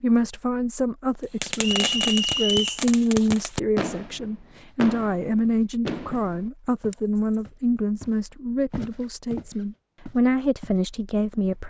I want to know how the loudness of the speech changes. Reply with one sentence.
The volume of the speech stays about the same.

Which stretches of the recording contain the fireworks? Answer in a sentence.
The fireworks can be heard from 1.4 to 7.3 s.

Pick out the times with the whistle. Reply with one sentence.
The whistle can be heard from 1.6 to 2.9 s.